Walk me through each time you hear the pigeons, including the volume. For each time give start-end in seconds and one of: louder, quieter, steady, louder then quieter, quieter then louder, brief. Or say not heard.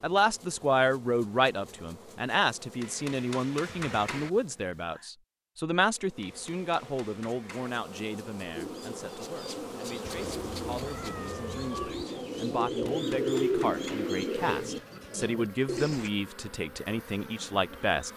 8.6-16.1 louder then quieter.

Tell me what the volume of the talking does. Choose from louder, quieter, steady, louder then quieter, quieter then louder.
quieter then louder.